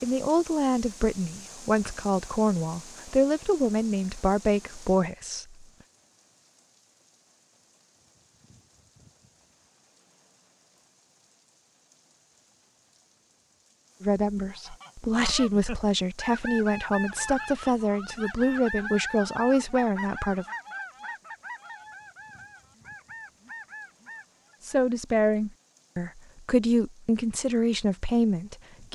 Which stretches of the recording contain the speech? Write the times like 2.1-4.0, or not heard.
0.0-5.7, 14.0-20.4, 24.6-28.9.